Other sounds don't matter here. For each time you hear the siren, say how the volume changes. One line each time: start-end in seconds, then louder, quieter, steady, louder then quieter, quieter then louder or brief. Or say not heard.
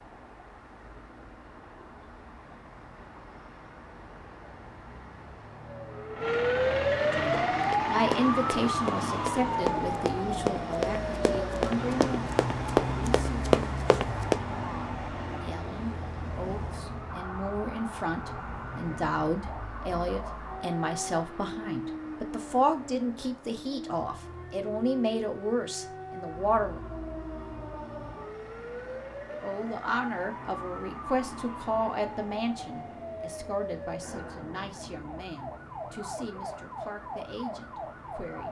5.5-38.4 quieter.